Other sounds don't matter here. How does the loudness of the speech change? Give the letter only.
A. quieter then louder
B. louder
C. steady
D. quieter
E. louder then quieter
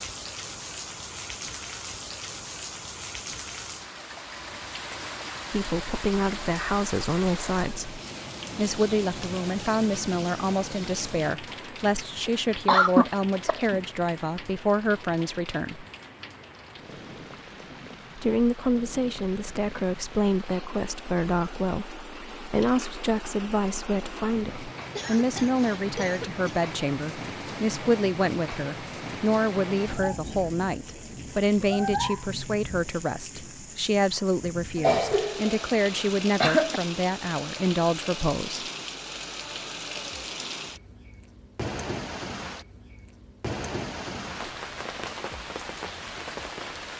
C.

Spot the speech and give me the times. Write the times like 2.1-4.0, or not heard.
5.5-15.8, 18.1-38.6.